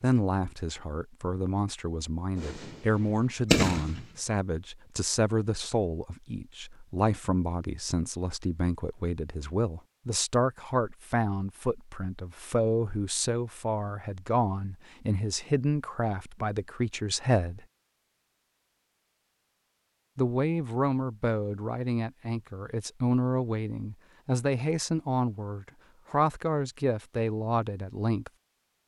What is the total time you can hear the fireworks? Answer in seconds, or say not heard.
2 s.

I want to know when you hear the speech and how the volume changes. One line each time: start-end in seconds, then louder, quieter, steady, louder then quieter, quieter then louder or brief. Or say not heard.
0.0-17.6 steady
20.1-28.3 steady.